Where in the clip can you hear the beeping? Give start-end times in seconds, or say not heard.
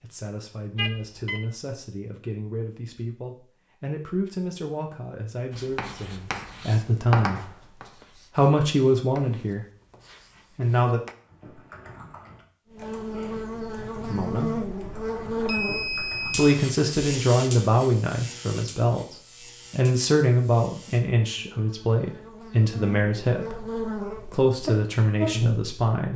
0.8-1.4, 15.3-16.9.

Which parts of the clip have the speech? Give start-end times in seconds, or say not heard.
0.0-7.5, 8.2-9.7, 10.6-11.0, 14.1-14.5, 16.4-26.1.